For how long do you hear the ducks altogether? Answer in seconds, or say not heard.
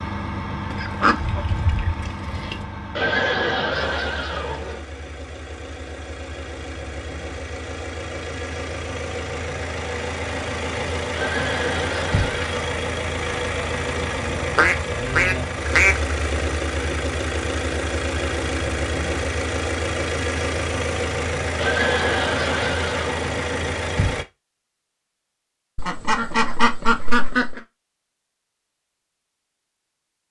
5 s.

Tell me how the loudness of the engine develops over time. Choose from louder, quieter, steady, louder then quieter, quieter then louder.
louder.